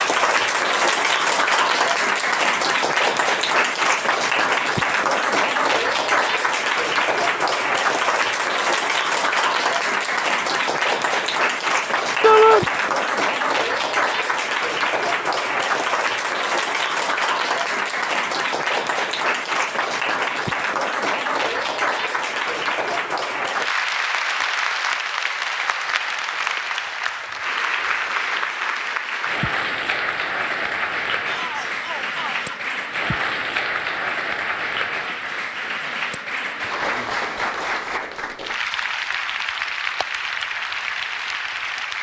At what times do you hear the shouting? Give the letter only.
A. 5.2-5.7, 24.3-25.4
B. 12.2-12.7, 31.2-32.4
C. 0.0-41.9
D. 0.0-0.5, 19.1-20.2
B.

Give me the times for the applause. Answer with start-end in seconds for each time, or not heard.
0.0-41.9.